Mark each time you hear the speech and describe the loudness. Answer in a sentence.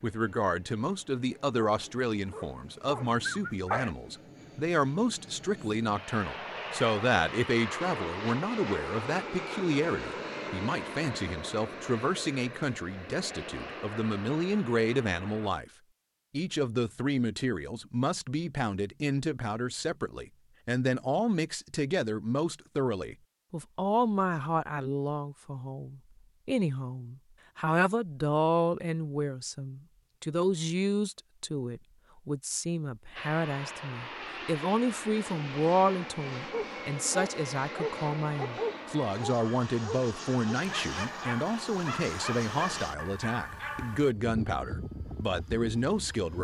You can hear the speech from 0.0 to 15.7 s, at a steady volume; and from 16.3 to 46.3 s, at a steady volume.